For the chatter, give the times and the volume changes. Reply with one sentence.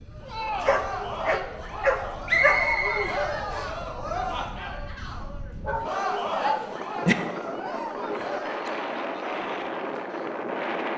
You can hear the chatter from 0.0 to 10.9 s, getting quieter.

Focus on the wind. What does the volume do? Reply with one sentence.
The volume of the wind goes up.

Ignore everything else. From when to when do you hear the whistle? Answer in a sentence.
The whistle can be heard from 2.2 to 3.7 s.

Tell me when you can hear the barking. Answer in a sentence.
You can hear the barking from 0.6 to 2.6 s and from 5.7 to 7.2 s.